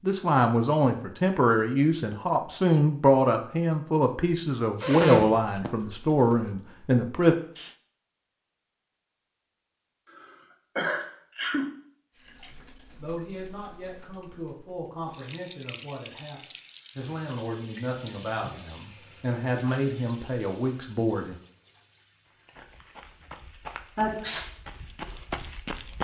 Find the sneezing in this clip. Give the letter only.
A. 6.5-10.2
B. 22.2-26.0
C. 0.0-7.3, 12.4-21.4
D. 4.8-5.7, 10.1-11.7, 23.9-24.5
D.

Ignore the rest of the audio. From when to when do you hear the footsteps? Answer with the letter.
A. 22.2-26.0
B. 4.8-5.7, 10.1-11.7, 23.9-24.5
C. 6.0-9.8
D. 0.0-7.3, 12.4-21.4
A.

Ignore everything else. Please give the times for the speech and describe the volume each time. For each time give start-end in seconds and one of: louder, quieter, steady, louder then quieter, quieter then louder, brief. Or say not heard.
0.0-7.3 steady
12.4-21.4 louder.